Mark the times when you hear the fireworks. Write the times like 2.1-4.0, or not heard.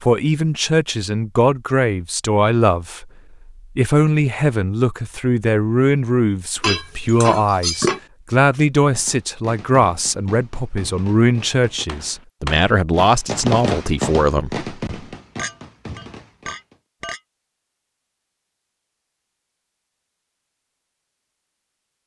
8.9-16.8.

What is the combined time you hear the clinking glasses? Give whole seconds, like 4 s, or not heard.
3 s.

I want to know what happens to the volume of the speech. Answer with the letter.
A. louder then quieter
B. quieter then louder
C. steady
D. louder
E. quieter
C.